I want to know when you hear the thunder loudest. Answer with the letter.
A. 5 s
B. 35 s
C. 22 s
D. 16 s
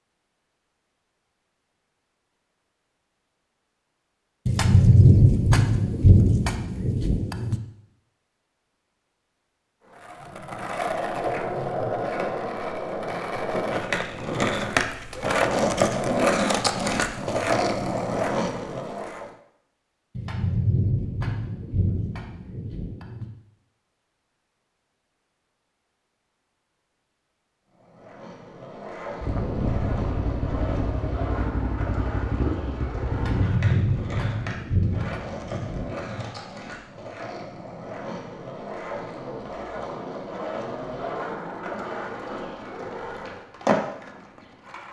A.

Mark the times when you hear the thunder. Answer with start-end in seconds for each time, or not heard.
4.5-7.5, 20.1-23.2, 33.1-36.2.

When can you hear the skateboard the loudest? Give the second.
16 s.